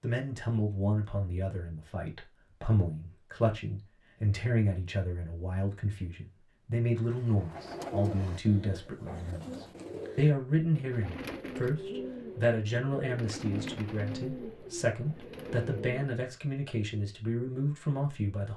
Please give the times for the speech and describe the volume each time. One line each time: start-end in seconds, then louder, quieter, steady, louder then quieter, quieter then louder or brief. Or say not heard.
0.0-18.5 steady.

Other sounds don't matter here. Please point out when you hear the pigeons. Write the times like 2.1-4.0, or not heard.
7.1-16.1.